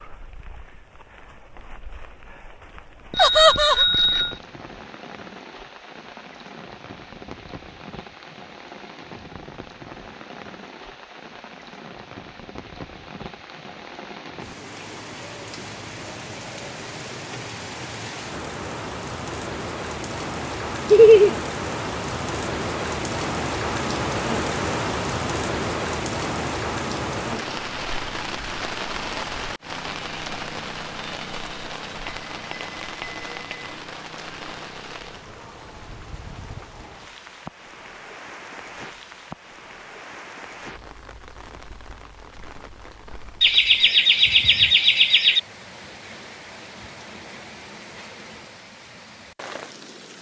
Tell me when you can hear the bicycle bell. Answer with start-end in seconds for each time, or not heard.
3.1-4.4, 32.0-33.8.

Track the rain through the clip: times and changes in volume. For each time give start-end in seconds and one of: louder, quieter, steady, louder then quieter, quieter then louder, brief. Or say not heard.
0.0-50.1 louder then quieter.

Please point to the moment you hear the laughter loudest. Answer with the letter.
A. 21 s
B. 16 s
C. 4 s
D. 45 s
A.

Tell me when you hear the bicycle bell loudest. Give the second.
4 s.